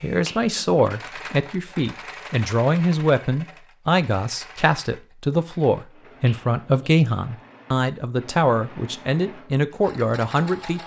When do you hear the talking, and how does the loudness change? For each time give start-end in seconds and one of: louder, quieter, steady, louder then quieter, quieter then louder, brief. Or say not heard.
0.0-10.8 steady.